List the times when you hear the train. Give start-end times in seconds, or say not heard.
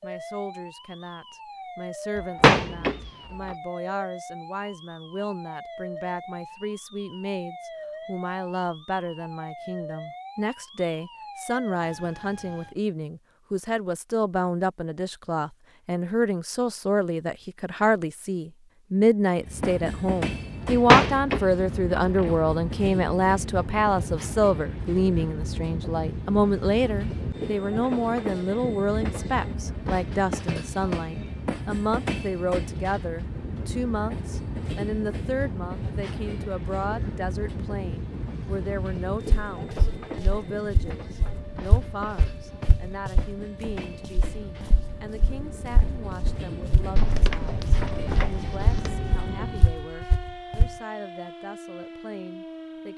19.4-49.8.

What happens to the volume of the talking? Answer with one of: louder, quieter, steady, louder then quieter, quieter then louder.
louder then quieter.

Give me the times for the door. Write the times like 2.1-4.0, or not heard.
2.1-3.5, 20.6-22.4, 47.0-49.1.